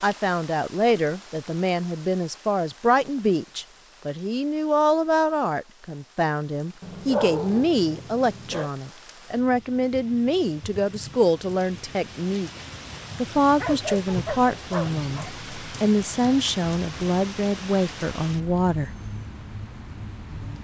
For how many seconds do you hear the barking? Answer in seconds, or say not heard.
4 s.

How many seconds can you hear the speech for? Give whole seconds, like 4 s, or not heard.
18 s.